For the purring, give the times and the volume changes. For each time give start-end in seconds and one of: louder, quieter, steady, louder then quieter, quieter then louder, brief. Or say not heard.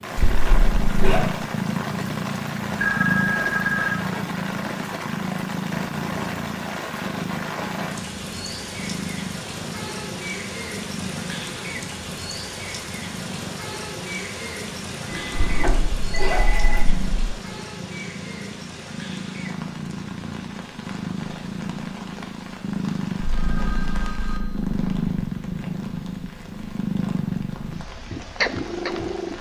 0.0-29.3 quieter then louder.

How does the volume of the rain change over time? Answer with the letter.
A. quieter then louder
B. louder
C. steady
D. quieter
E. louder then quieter
D.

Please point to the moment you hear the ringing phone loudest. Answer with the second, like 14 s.
3 s.